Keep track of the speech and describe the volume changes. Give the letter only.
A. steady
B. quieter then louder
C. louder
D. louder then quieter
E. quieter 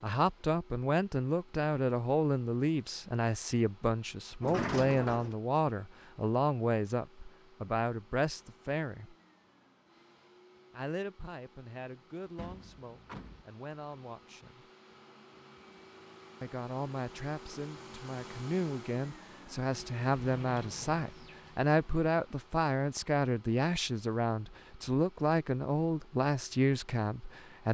B.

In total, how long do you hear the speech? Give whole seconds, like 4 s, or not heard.
24 s.